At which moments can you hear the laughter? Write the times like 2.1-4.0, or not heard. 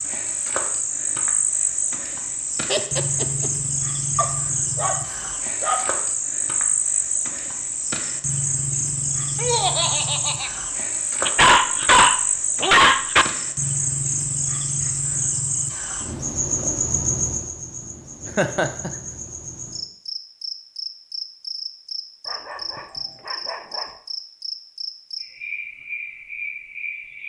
2.6-3.5, 9.3-10.5, 18.2-18.9.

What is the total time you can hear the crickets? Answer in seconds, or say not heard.
27 s.